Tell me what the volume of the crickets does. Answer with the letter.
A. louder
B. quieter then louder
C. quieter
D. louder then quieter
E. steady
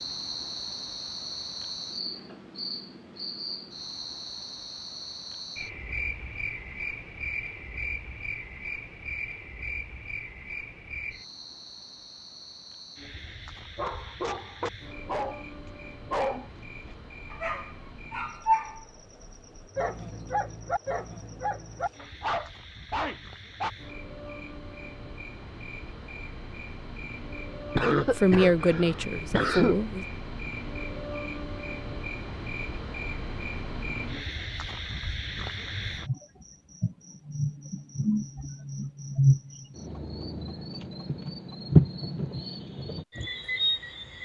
B.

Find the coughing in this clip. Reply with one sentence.
The coughing can be heard from 27.7 to 29.8 s.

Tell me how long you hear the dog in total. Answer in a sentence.
You can hear the dog for 10 seconds altogether.